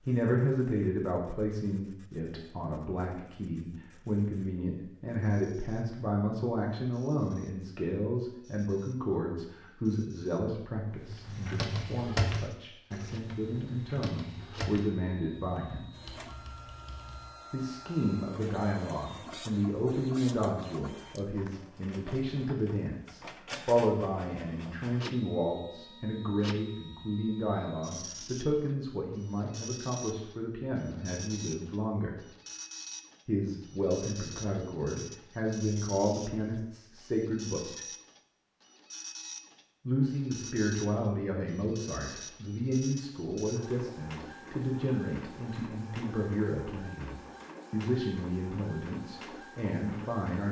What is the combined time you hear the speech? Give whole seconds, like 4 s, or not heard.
46 s.